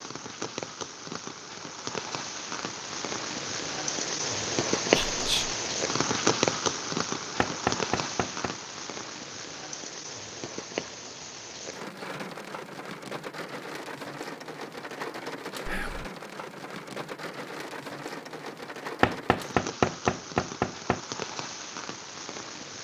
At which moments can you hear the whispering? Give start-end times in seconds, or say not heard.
5.1-5.5, 15.7-16.1.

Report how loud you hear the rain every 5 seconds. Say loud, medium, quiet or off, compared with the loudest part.
loud, loud, medium, medium, medium.